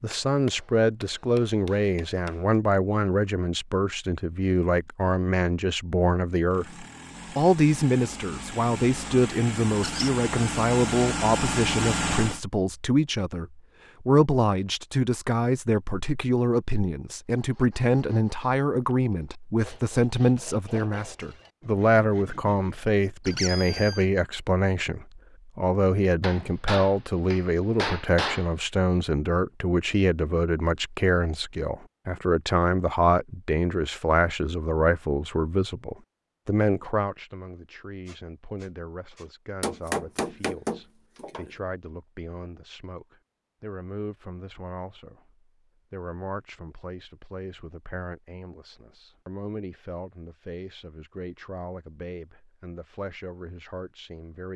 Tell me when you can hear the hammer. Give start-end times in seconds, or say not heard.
0.1-2.4, 26.2-28.5, 39.6-41.5.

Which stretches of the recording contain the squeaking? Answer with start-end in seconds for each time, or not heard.
9.8-10.2, 23.2-24.1, 38.0-39.8.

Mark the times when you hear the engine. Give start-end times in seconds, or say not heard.
6.5-12.4.